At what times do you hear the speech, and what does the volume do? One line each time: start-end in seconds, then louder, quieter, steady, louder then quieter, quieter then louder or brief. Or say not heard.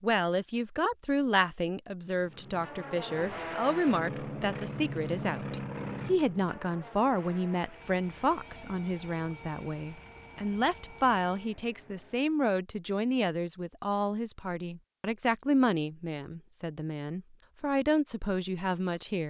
0.0-19.2 steady.